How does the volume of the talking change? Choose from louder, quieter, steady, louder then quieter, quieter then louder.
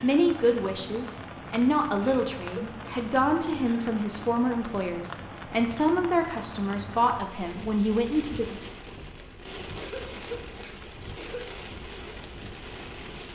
steady.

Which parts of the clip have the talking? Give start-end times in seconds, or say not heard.
0.0-8.6.